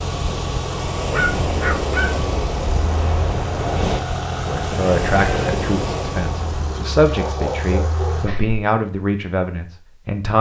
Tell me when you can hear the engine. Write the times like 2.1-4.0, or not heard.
0.0-8.3.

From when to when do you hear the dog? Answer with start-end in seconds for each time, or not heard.
1.1-2.2, 7.1-8.7.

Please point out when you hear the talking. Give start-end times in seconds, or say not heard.
4.5-10.3.